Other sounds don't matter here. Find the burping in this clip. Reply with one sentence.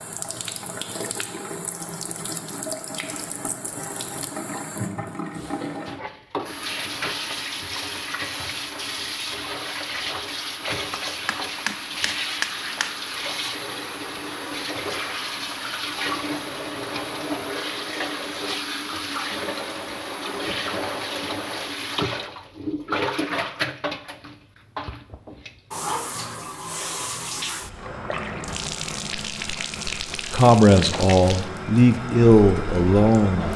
You can't hear the burping here.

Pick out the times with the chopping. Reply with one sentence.
You can hear the chopping from 10.9 to 13.0 s.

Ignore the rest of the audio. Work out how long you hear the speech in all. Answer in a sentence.
You can hear the speech for 3 seconds altogether.